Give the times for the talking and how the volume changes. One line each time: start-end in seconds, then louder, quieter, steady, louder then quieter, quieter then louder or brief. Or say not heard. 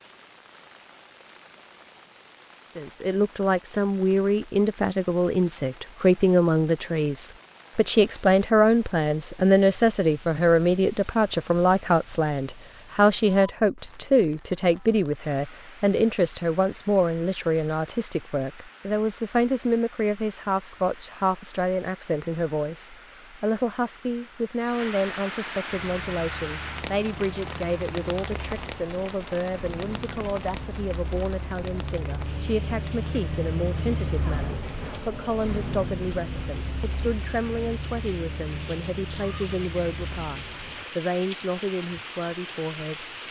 2.8-43.0 quieter.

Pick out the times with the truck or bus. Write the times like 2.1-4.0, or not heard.
25.7-40.9.